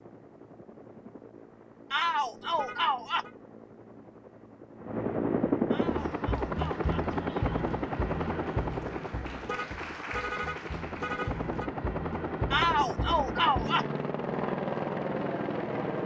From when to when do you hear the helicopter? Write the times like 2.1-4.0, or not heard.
0.0-16.0.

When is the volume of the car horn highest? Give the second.
10 s.